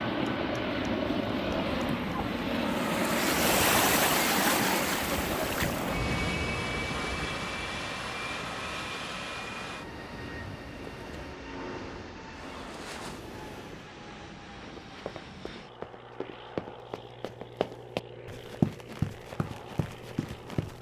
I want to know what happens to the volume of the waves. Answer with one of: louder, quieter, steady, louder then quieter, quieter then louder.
louder then quieter.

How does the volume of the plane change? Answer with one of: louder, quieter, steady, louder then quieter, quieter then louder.
quieter.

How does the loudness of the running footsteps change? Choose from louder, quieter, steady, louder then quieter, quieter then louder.
louder then quieter.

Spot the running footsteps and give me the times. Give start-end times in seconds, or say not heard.
14.7-20.7.